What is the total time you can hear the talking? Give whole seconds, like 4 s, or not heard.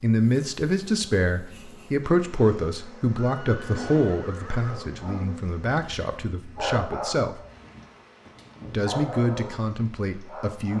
9 s.